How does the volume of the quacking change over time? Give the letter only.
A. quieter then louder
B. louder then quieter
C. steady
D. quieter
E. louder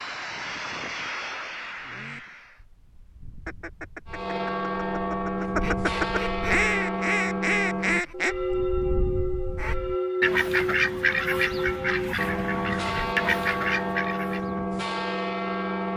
E.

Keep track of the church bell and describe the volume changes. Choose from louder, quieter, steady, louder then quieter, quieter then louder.
steady.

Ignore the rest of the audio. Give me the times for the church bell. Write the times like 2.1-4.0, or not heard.
4.0-15.9.